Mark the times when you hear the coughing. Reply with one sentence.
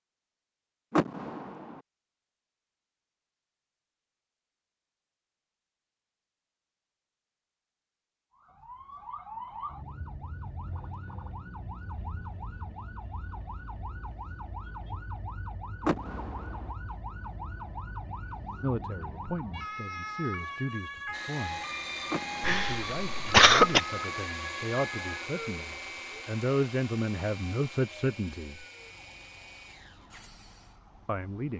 The coughing can be heard from 22.4 to 23.8 s.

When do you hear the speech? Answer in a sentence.
You can hear the speech from 18.6 to 21.6 s, from 22.5 to 28.6 s and from 31.1 to 31.5 s.